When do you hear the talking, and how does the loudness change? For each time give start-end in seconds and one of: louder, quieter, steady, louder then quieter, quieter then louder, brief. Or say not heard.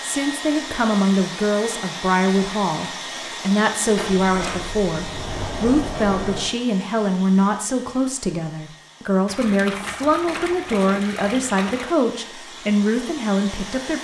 0.0-14.0 steady.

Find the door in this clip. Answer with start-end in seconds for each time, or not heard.
4.0-6.5.